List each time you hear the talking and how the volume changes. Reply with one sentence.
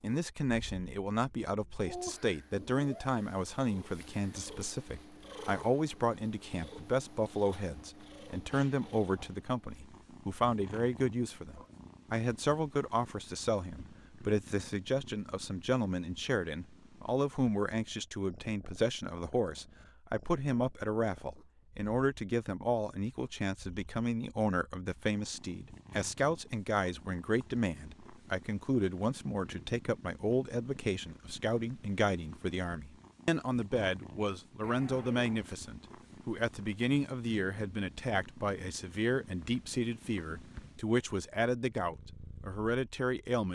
The talking can be heard from 0.0 to 43.4 s, at a steady volume.